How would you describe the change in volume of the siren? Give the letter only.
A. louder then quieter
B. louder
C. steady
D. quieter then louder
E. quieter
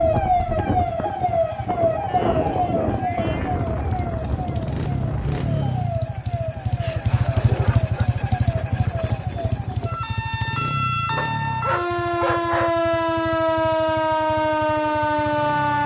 D.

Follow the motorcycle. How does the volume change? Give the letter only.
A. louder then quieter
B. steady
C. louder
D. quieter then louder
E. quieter
A.